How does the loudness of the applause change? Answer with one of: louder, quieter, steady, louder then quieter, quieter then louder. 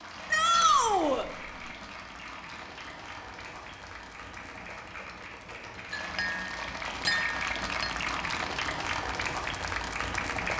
louder.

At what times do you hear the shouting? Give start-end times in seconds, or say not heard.
0.3-1.2.